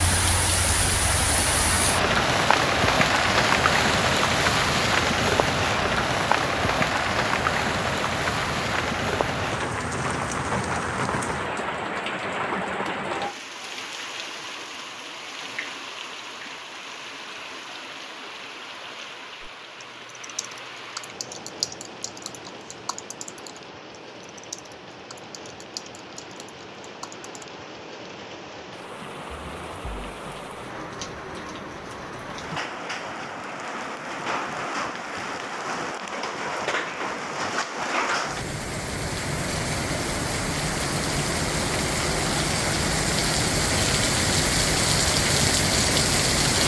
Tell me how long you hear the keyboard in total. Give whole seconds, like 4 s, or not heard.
8 s.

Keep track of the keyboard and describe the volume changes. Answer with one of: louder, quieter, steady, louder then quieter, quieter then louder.
louder then quieter.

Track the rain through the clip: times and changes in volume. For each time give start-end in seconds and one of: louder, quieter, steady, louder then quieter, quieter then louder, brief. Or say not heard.
0.0-46.6 quieter then louder.